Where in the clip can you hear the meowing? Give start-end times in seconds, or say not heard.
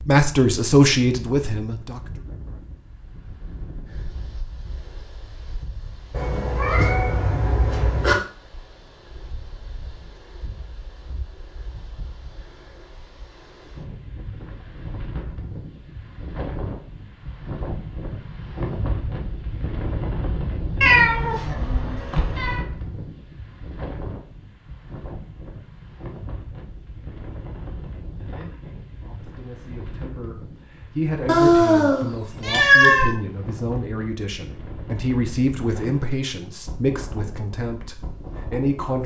6.1-8.2, 20.8-22.6, 31.2-33.1.